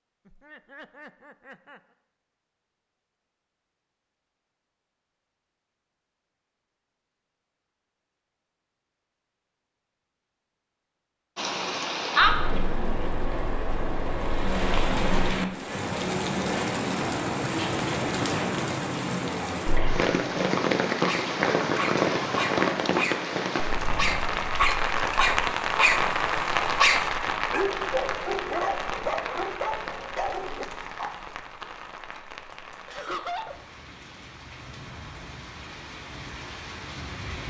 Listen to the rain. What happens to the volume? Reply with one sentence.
The loudness of the rain goes down.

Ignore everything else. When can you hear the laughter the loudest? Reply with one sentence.
The loudest moment of the laughter is at 33 seconds.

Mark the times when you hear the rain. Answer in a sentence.
The rain can be heard from 11.3 to 37.4 s.